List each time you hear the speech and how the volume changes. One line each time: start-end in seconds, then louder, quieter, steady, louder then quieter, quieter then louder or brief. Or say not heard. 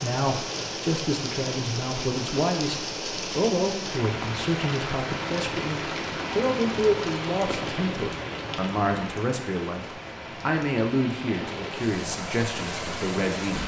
0.0-13.6 steady.